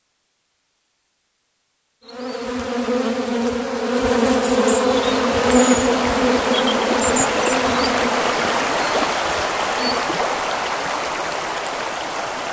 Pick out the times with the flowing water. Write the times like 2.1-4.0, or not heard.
5.0-12.4.